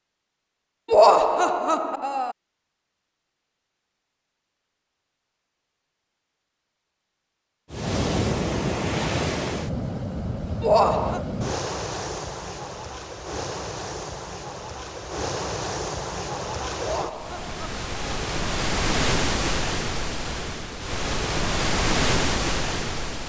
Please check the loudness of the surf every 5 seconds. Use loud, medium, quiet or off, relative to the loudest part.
off, loud, medium, loud, loud.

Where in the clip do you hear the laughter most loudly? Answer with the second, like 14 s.
1 s.